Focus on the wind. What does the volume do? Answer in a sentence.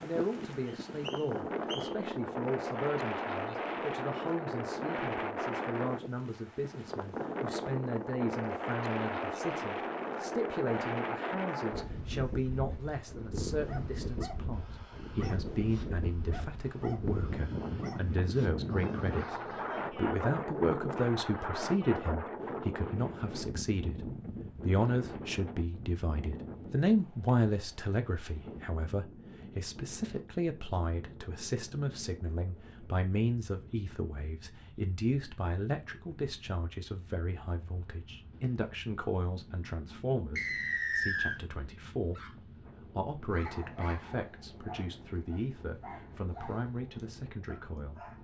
The loudness of the wind goes down.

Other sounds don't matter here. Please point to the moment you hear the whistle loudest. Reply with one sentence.
The loudest moment of the whistle is at 41 seconds.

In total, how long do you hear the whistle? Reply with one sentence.
You can hear the whistle for 2 seconds altogether.